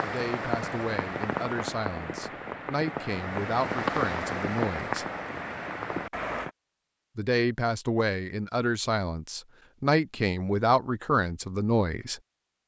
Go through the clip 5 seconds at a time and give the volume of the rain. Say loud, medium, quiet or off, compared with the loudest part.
loud, loud, off.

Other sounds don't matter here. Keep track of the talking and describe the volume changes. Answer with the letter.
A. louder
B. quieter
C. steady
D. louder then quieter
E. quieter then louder
A.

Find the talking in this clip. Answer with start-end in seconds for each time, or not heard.
0.0-5.0, 7.2-12.2.